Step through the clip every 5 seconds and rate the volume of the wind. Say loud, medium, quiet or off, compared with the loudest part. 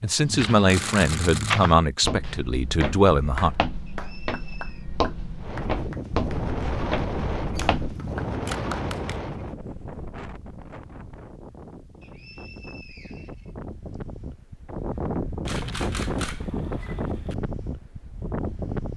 off, loud, medium, loud.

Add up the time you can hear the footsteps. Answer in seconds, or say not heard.
8 s.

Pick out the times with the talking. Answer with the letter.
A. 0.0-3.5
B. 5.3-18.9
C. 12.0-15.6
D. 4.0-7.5
A.